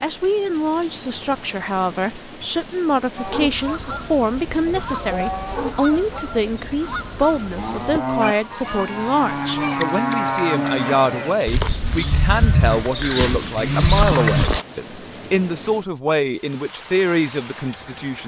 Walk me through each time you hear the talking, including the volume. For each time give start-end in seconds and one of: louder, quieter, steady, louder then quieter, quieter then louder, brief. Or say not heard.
0.0-18.2 steady.